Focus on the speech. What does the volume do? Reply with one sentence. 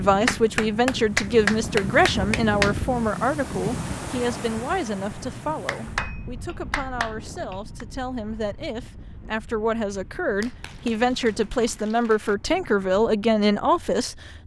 The loudness of the speech goes down, then up.